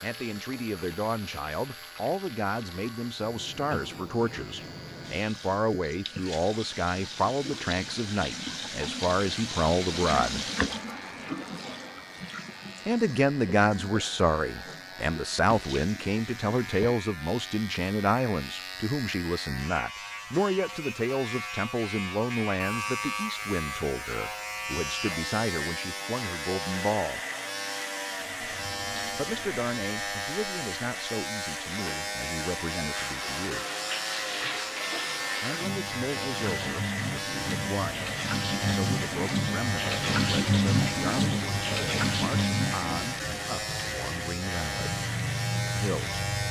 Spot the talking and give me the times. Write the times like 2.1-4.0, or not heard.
0.0-10.4, 12.8-27.2, 29.1-33.6, 35.4-45.0, 45.8-46.2.